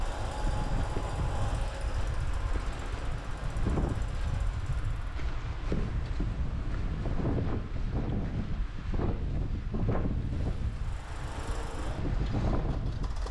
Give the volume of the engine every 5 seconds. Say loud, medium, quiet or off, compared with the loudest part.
loud, off, loud.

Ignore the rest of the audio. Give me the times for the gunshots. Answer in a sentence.
You can't hear the gunshots here.